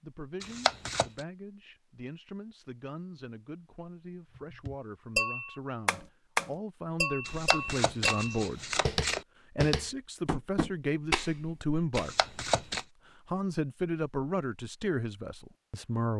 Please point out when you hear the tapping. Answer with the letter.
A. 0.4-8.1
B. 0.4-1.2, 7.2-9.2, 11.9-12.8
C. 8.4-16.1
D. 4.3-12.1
D.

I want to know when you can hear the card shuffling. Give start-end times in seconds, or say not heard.
0.4-1.2, 7.2-9.2, 11.9-12.8.